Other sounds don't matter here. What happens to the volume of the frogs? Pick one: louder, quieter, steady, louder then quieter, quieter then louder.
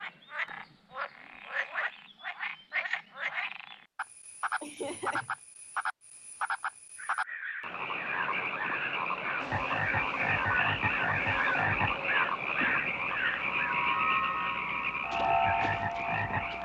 louder.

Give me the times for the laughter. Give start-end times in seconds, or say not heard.
4.6-5.3.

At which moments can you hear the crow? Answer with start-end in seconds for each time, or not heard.
7.0-13.8.